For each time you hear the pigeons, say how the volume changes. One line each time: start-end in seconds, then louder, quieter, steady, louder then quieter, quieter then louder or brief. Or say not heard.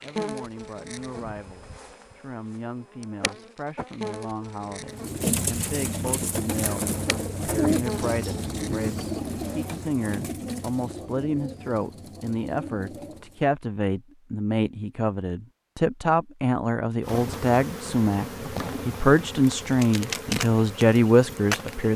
4.9-13.4 quieter.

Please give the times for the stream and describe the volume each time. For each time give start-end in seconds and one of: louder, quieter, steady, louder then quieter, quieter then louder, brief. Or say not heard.
not heard.